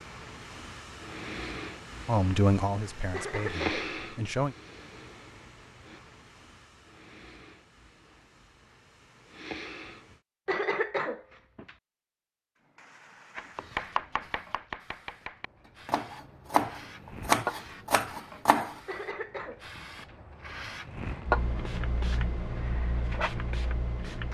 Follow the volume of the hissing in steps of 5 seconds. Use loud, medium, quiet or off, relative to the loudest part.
medium, quiet, quiet, medium, loud.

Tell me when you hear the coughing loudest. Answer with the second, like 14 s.
11 s.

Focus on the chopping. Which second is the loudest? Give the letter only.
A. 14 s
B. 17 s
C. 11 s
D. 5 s
B.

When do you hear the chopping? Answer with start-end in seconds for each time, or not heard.
13.3-18.8.